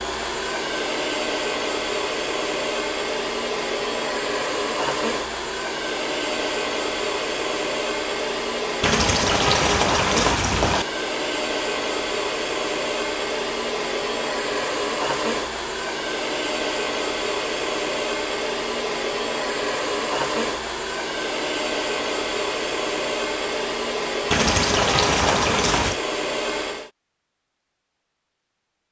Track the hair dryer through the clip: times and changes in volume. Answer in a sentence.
The hair dryer can be heard from 0.0 to 26.9 s, at a steady volume.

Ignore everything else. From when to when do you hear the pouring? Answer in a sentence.
The pouring can be heard from 8.8 to 10.8 s and from 24.3 to 25.9 s.